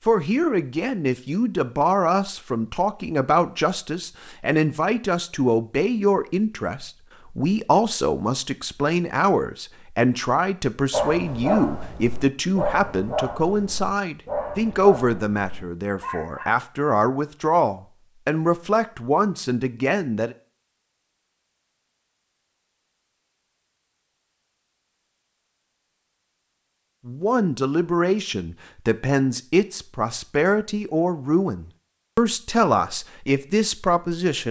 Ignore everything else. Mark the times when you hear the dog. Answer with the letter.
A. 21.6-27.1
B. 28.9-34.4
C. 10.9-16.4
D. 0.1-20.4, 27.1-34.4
C.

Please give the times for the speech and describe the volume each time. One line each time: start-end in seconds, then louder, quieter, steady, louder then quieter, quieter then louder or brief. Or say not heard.
0.1-20.4 steady
27.1-34.4 steady.